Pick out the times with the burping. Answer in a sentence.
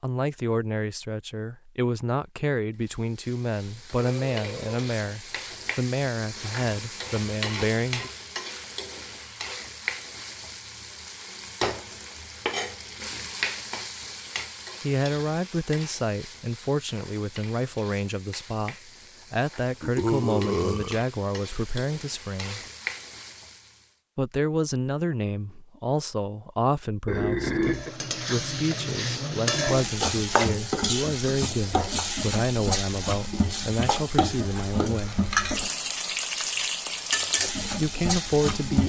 The burping can be heard from 4.0 to 4.8 s, from 19.8 to 21.1 s and from 27.1 to 27.9 s.